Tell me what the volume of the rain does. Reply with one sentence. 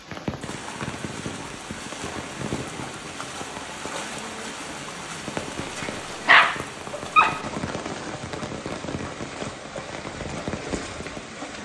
The volume of the rain stays about the same.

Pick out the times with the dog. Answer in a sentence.
The dog can be heard from 5.6 to 7.5 s.